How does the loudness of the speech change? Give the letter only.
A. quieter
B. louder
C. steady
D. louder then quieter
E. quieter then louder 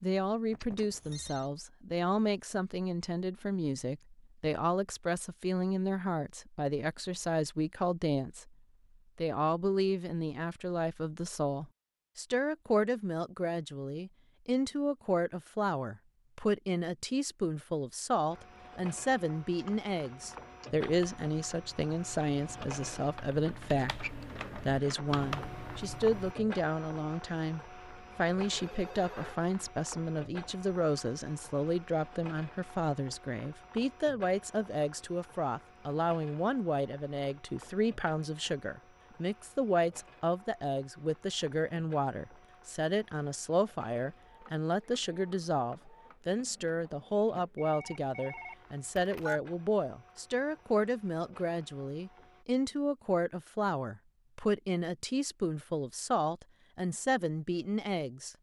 C.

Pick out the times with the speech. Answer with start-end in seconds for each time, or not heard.
0.0-8.5, 9.2-58.3.